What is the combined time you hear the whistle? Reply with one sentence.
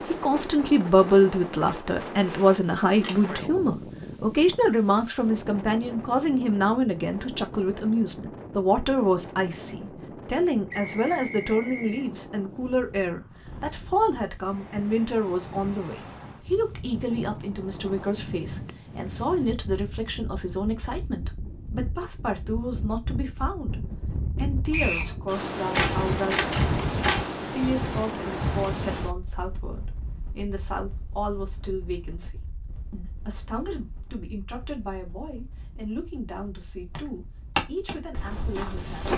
The whistle can be heard for 2 seconds in total.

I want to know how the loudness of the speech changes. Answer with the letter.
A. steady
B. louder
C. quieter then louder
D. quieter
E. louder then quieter
D.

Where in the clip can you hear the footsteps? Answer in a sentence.
You can hear the footsteps from 37.0 to 39.1 s.